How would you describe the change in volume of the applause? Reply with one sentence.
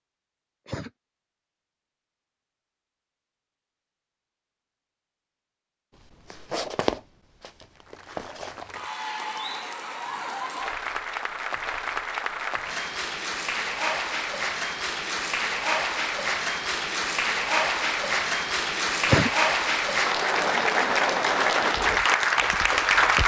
The loudness of the applause goes up.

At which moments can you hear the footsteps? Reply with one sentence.
You can hear the footsteps from 6.2 to 8.7 s and from 21.7 to 23.2 s.